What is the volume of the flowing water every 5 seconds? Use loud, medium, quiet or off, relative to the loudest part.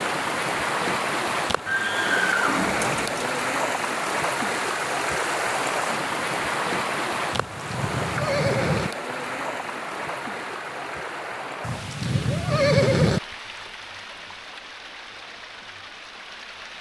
loud, loud, medium, quiet.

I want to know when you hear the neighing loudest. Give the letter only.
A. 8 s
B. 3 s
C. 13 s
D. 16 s
C.